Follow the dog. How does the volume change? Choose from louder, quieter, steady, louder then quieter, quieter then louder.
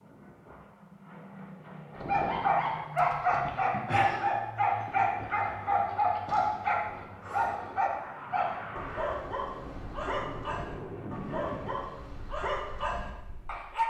quieter.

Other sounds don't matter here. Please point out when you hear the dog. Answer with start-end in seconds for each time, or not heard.
1.9-13.8.